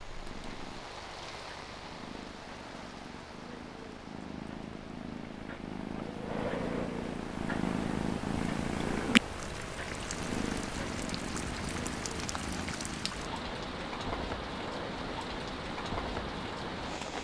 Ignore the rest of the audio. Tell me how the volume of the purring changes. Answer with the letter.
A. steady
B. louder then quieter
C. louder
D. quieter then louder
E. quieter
B.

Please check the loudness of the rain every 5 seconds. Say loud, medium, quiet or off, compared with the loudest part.
medium, medium, loud, loud.